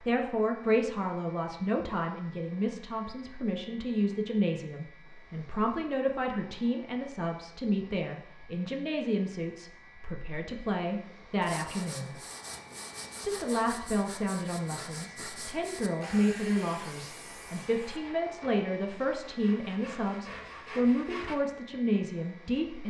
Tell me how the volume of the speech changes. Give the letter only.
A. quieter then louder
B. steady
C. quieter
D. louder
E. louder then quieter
B.